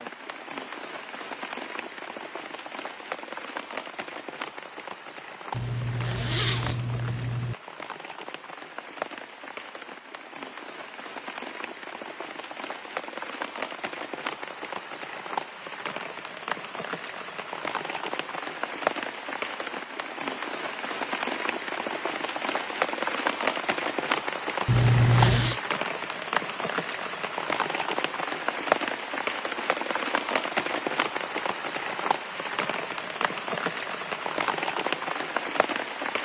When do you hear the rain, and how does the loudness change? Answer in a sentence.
The rain can be heard from 0.0 to 36.1 s, getting louder.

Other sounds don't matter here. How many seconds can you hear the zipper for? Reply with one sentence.
The zipper can be heard for 3 seconds in total.